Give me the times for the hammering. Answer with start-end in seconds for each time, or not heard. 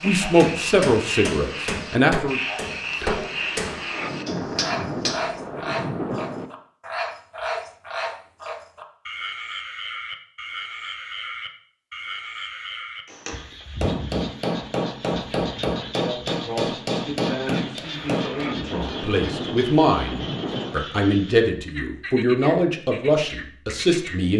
0.2-5.2, 13.1-18.5.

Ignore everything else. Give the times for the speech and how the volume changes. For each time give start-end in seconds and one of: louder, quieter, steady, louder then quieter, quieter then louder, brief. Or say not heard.
0.0-2.4 brief
15.8-24.3 louder.